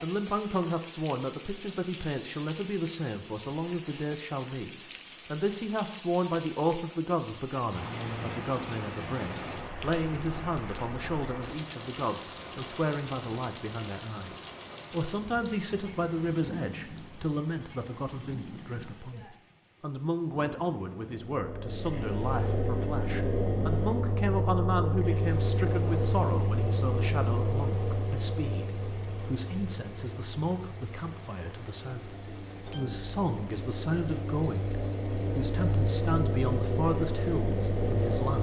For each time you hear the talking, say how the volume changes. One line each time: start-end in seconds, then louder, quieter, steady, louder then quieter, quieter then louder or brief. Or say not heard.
0.0-38.3 steady.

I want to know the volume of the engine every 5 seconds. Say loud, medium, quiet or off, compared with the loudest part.
off, off, off, off, loud, loud, medium, loud.